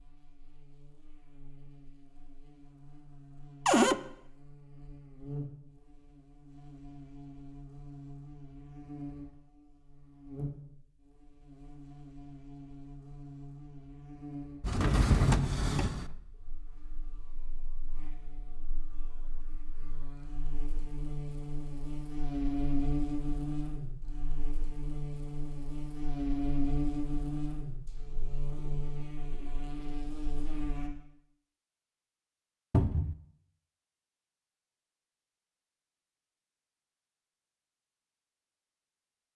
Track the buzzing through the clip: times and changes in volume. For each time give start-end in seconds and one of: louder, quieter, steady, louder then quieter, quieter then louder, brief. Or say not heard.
0.0-30.9 louder.